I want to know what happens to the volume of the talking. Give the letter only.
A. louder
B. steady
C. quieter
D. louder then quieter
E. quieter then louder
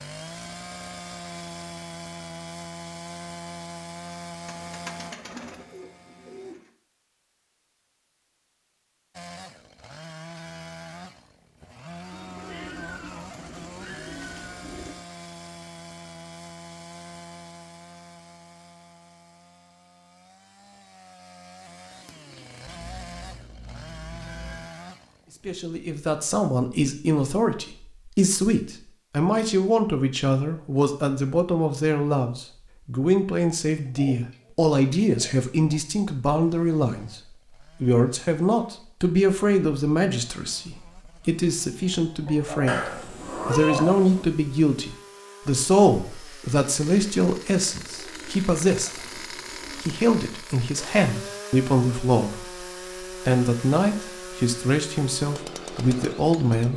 B.